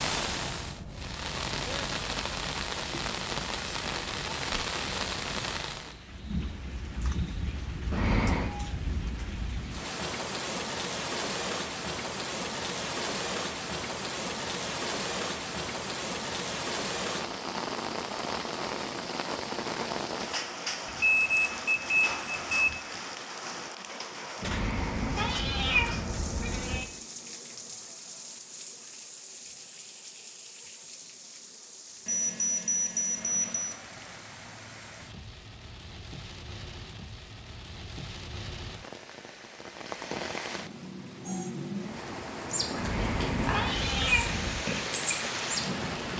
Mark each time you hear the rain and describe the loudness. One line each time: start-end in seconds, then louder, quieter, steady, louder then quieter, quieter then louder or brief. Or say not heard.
0.0-46.1 quieter then louder.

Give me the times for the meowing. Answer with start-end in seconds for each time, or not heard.
7.9-8.6, 24.4-26.9, 42.8-44.6.